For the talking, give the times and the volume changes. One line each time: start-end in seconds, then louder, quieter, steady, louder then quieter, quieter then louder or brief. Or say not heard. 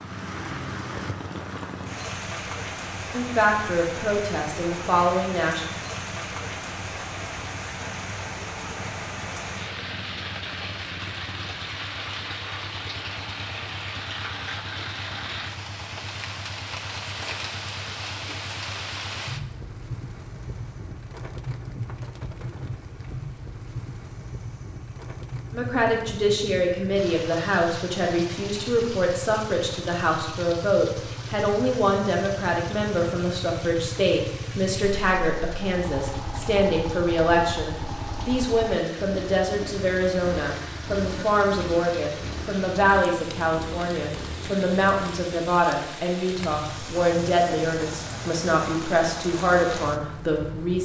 3.1-5.7 brief
25.5-50.8 steady.